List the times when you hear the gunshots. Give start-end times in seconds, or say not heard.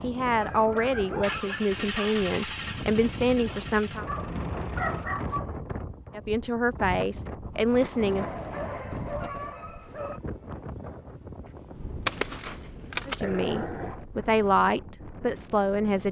11.8-13.2.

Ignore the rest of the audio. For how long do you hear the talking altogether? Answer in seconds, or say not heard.
9 s.